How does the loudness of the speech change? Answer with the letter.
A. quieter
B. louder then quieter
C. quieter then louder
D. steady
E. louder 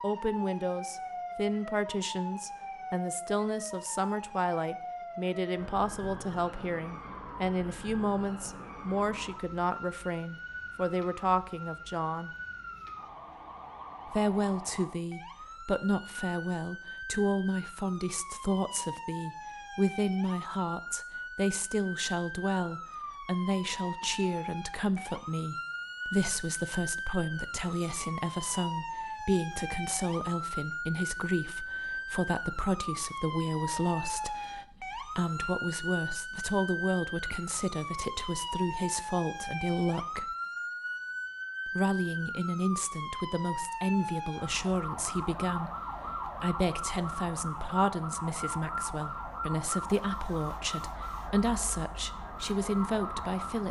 D.